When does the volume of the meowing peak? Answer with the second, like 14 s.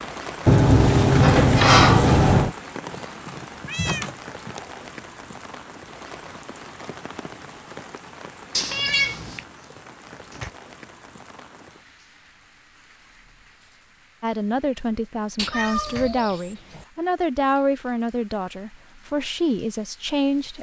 9 s.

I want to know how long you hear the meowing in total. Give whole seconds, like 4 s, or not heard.
4 s.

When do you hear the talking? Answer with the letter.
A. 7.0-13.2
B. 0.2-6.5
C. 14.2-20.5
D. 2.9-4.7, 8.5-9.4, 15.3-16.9
C.